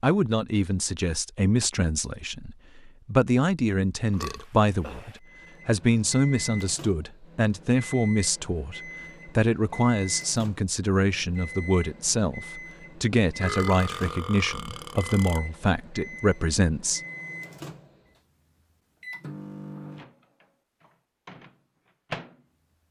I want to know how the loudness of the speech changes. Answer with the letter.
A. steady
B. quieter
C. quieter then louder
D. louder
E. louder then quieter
A.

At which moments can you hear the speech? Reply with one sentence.
You can hear the speech from 0.0 to 17.0 s.